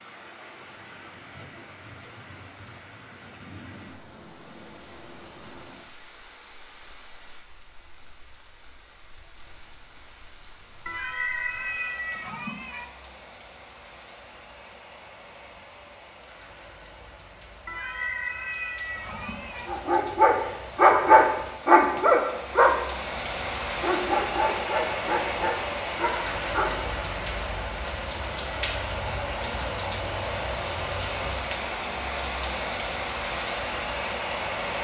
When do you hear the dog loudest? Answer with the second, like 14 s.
21 s.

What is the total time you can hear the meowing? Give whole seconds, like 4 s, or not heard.
4 s.